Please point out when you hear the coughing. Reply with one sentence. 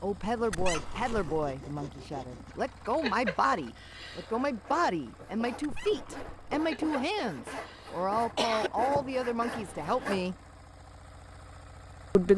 The coughing can be heard from 3.0 to 4.3 s and from 6.7 to 8.7 s.